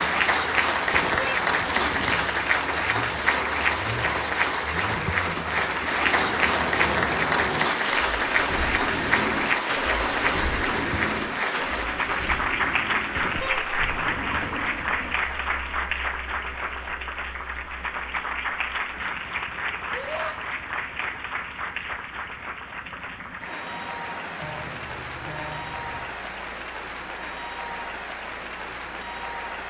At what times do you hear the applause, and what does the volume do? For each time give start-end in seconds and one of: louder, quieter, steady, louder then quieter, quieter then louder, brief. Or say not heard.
0.0-29.6 quieter.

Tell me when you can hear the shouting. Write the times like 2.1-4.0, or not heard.
19.9-20.4.